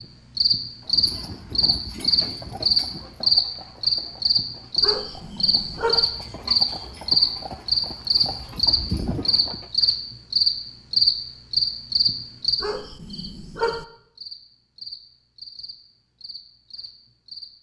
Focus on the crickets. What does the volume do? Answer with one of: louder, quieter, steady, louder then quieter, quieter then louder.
quieter.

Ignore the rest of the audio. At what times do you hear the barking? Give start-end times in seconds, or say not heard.
4.8-6.0, 12.6-13.8.